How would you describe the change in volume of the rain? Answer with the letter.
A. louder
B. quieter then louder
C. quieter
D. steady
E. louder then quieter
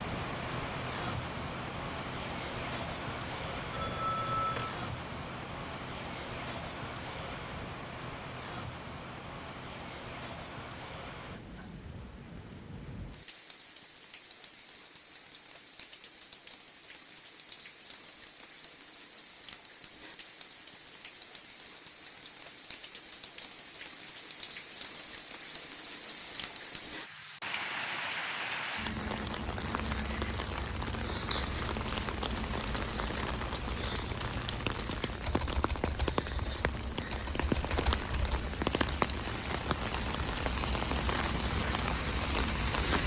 B.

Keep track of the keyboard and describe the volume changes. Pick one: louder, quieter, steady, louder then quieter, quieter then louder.
quieter then louder.